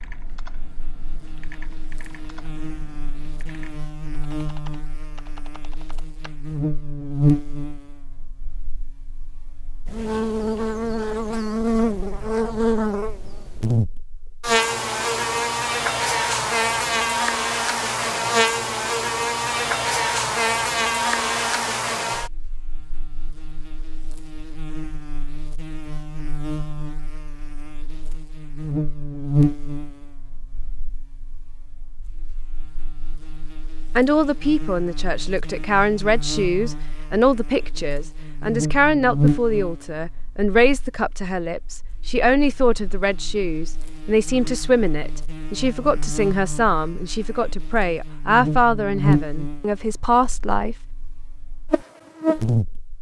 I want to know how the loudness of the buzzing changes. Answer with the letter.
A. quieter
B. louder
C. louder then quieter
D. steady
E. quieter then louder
C.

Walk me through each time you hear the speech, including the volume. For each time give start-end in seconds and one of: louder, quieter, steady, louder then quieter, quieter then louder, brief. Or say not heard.
34.0-50.8 steady.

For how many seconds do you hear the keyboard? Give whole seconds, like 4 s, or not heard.
6 s.